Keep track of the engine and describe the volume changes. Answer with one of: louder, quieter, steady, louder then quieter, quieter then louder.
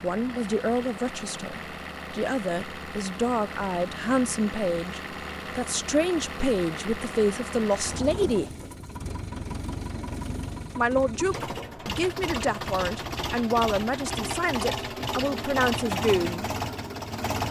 louder.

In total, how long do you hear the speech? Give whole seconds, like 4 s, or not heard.
14 s.